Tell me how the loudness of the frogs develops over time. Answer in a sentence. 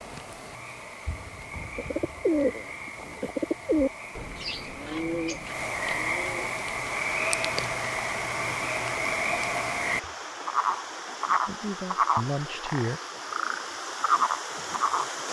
The loudness of the frogs goes up.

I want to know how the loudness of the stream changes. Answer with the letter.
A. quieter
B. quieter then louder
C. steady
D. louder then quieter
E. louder
C.